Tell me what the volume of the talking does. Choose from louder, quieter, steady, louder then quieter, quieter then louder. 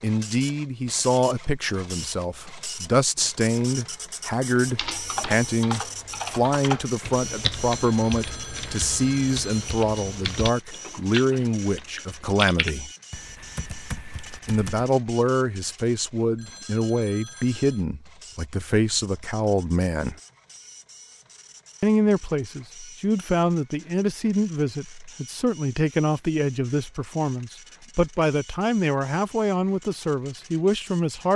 steady.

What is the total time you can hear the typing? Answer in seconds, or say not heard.
10 s.